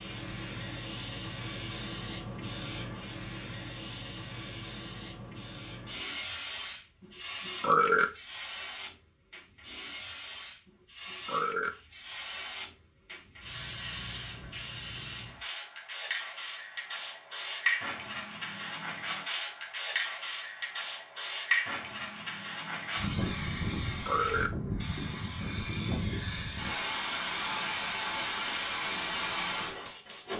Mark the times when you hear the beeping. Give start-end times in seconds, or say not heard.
not heard.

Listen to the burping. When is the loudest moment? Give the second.
8 s.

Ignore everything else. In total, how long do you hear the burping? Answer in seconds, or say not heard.
2 s.